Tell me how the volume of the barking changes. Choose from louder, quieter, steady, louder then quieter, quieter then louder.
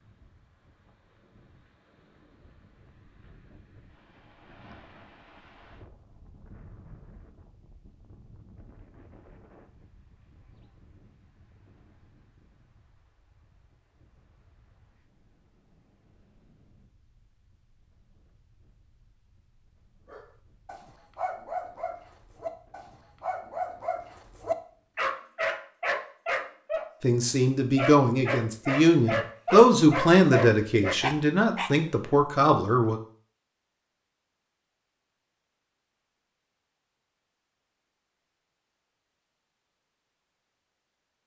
louder.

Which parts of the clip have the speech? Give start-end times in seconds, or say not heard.
27.0-33.0.